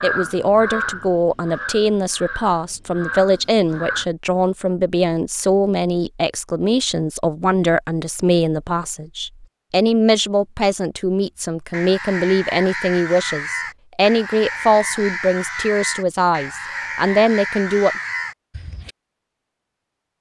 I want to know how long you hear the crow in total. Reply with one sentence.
You can hear the crow for 11 seconds altogether.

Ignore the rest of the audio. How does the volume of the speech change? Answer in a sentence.
The volume of the speech stays about the same.